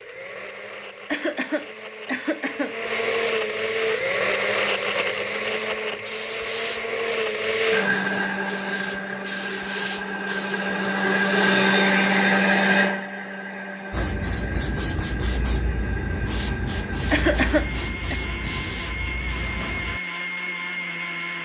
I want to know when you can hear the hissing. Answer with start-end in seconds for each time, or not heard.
3.8-11.2, 13.9-20.0.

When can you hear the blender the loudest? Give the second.
12 s.